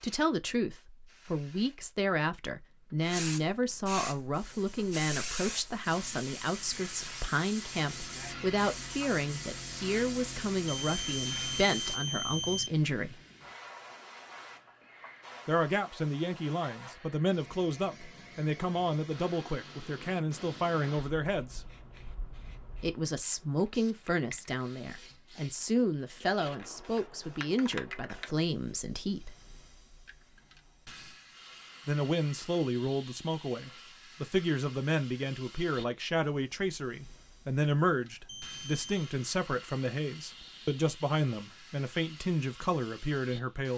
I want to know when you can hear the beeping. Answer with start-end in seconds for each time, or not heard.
10.7-12.7, 38.2-39.1.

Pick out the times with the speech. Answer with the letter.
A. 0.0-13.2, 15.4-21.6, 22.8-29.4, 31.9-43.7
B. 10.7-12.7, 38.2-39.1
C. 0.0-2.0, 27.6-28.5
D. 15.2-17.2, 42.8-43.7
A.